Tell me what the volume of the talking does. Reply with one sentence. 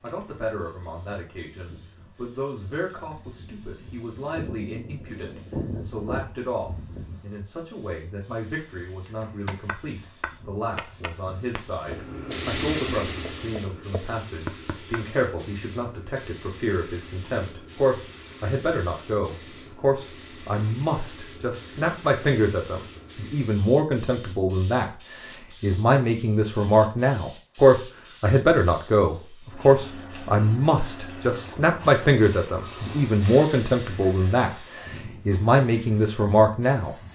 The loudness of the talking goes up.